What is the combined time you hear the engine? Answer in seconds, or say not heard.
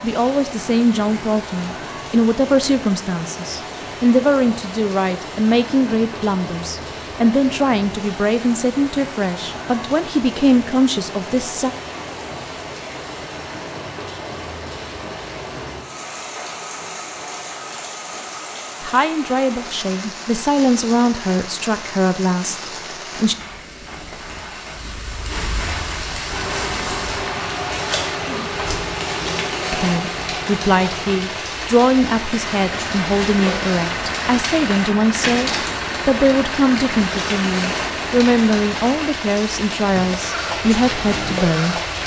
16 s.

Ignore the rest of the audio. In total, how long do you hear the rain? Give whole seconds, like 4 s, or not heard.
42 s.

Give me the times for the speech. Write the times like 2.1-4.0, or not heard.
0.0-11.7, 18.8-23.4, 29.7-41.8.